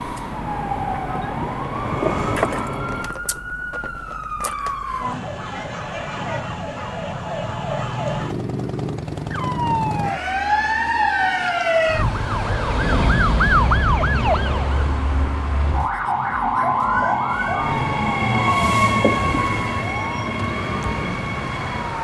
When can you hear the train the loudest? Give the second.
19 s.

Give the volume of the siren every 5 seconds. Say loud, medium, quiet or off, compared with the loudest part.
medium, medium, loud, medium, medium.